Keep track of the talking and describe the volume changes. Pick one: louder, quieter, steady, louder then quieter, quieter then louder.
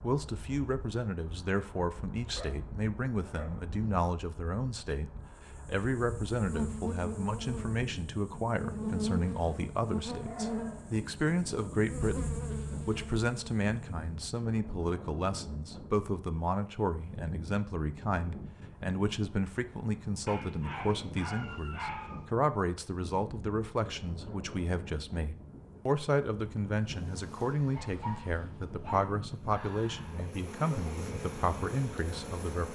steady.